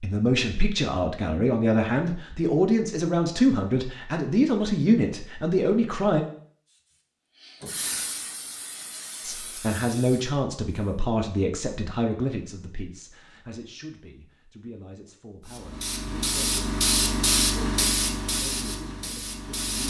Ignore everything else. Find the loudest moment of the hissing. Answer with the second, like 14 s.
17 s.